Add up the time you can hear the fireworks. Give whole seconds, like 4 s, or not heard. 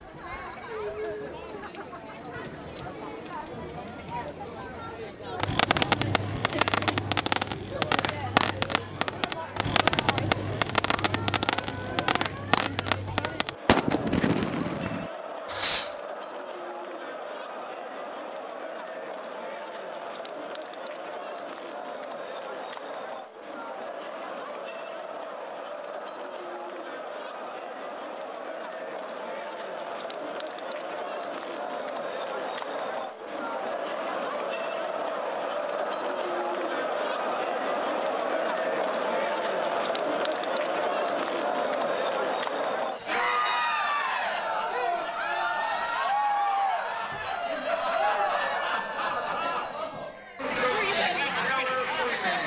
11 s.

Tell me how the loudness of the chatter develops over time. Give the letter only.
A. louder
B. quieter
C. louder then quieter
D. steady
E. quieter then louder
A.